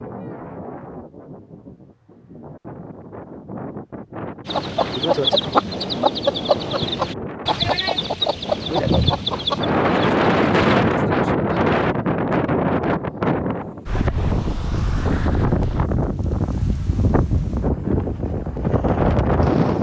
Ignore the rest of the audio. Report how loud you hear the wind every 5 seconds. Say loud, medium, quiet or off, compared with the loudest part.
quiet, medium, loud, loud.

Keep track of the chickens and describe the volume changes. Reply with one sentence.
The volume of the chickens stays about the same.